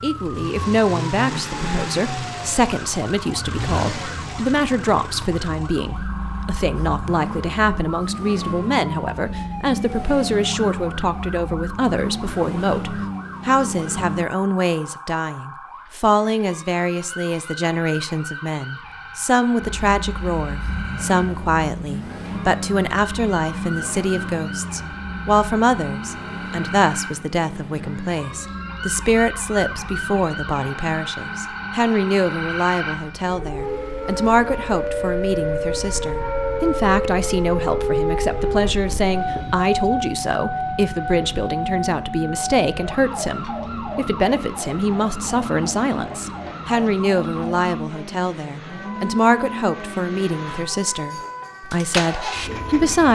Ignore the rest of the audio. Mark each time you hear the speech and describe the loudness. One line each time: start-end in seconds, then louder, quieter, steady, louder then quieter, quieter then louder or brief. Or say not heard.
0.0-53.1 steady.